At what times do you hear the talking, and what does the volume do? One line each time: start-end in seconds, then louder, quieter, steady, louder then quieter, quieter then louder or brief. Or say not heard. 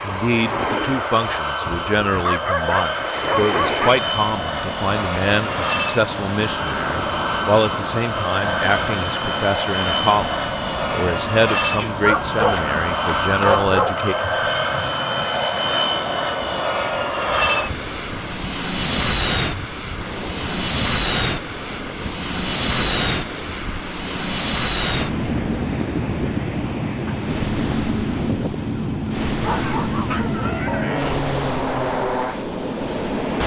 0.0-14.2 steady.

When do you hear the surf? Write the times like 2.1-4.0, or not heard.
0.0-33.4.